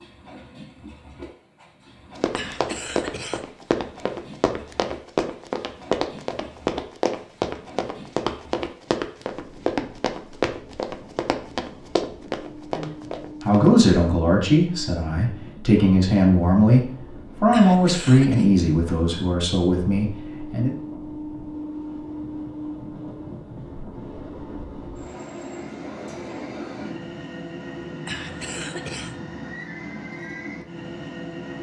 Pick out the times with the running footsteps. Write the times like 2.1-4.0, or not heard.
2.1-13.9.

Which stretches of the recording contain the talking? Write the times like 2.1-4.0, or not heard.
12.7-20.8.